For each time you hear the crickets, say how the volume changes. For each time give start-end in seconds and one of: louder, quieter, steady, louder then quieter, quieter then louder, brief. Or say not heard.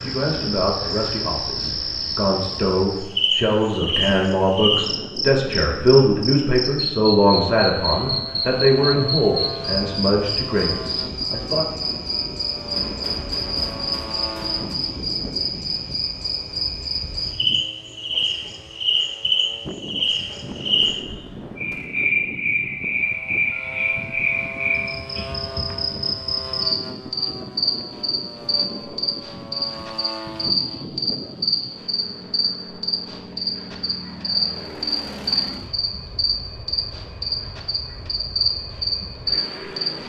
0.0-40.0 steady.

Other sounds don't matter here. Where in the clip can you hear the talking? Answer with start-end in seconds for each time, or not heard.
0.0-11.7.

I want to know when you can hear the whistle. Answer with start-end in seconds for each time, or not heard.
not heard.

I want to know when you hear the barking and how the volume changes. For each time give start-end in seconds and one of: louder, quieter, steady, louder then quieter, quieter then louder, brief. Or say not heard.
not heard.